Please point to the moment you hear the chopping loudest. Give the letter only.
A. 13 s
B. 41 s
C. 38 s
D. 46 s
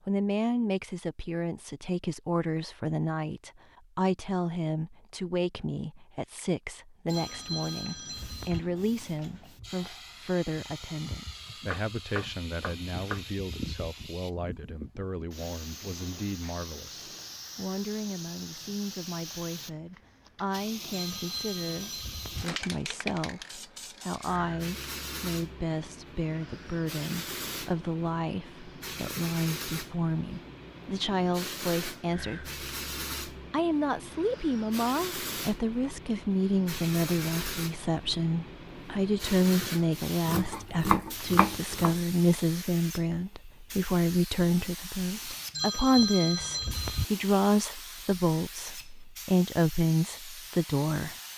B.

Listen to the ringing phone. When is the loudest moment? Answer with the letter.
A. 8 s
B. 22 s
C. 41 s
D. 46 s
D.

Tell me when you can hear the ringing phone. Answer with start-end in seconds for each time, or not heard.
7.0-8.6, 20.9-22.4, 45.5-47.0.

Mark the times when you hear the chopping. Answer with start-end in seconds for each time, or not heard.
11.7-13.3, 40.2-42.0.